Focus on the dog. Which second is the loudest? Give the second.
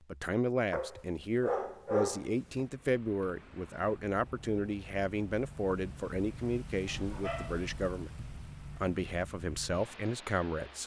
2 s.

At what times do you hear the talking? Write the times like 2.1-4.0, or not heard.
0.1-10.8.